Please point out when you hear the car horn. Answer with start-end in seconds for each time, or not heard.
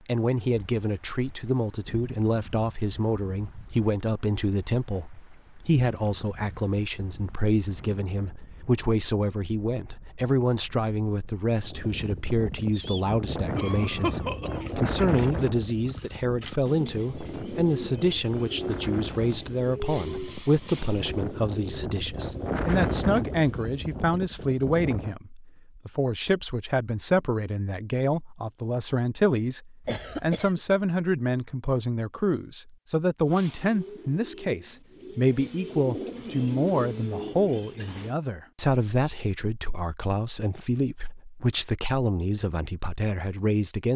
not heard.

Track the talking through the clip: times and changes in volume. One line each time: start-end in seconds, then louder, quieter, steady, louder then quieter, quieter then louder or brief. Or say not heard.
0.1-43.9 steady.